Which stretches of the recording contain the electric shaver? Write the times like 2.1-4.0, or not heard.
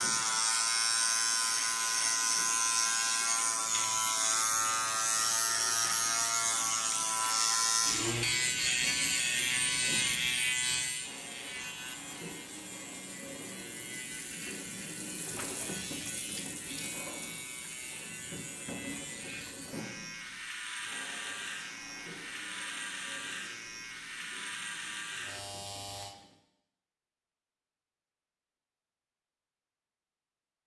0.0-26.1.